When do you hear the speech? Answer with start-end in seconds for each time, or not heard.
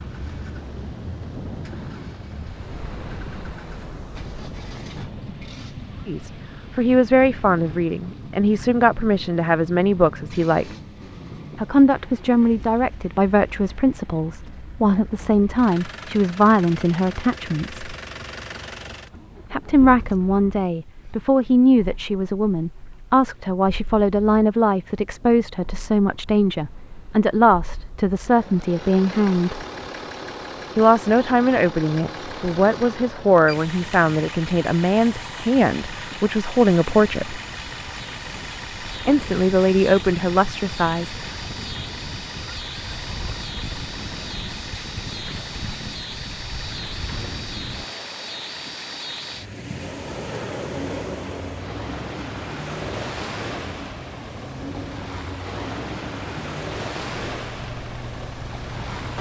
6.0-10.7, 11.6-17.9, 19.5-29.6, 30.8-37.4, 39.0-41.1.